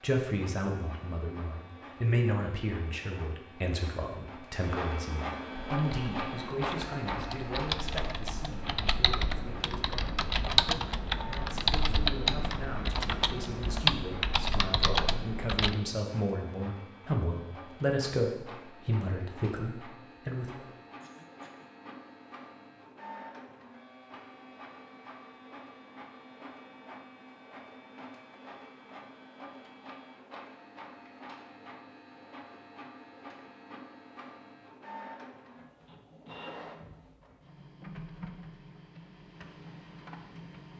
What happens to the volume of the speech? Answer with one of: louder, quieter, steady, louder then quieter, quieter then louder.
quieter then louder.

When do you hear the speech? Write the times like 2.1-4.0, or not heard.
0.0-20.6.